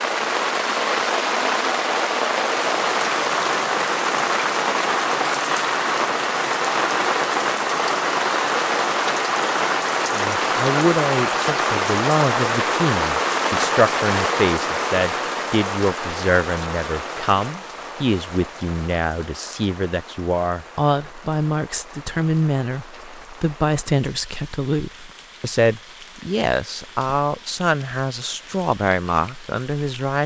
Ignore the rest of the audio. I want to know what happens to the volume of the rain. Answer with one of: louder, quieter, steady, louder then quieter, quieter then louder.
quieter.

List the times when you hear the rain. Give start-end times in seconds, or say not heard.
0.0-30.2.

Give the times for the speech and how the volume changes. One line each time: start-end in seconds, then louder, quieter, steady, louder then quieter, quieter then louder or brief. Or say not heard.
10.1-30.2 steady.